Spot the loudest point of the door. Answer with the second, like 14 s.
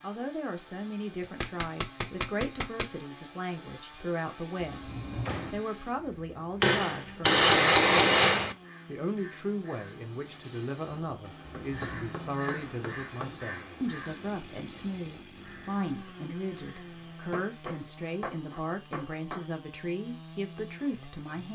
5 s.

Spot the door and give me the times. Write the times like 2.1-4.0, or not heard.
4.6-5.6, 11.7-12.1.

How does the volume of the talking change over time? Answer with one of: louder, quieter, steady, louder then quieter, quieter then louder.
steady.